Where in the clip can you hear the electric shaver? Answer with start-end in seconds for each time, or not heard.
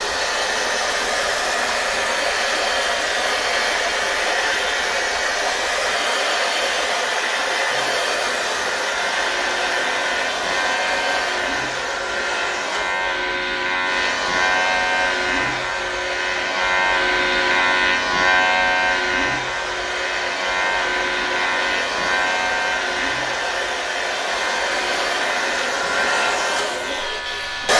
0.1-27.7.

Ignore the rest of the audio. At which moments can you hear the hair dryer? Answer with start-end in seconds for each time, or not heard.
0.0-27.7.